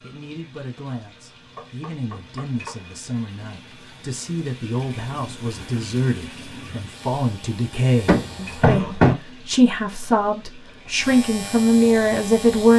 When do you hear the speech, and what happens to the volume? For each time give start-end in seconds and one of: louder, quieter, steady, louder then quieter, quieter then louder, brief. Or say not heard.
0.0-12.7 louder.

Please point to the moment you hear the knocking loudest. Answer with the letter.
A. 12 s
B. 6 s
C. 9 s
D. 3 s
C.